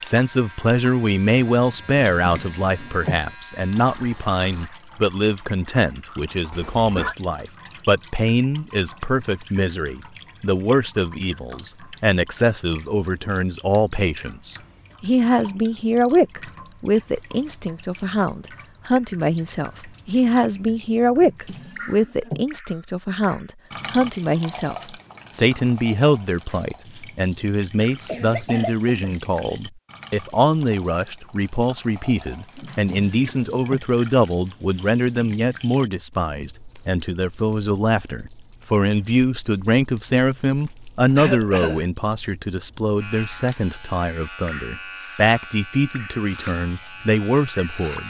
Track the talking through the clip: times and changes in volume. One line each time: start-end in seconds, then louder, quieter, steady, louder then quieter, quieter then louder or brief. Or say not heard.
0.0-48.0 steady.